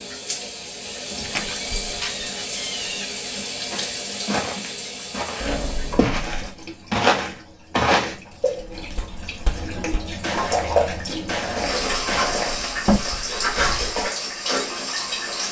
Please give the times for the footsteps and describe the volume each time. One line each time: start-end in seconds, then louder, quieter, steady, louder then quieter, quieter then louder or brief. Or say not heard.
3.7-14.0 louder then quieter.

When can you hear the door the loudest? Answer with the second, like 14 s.
13 s.